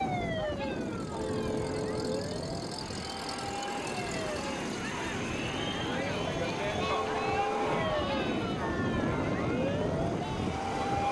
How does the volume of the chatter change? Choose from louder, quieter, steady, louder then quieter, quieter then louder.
louder then quieter.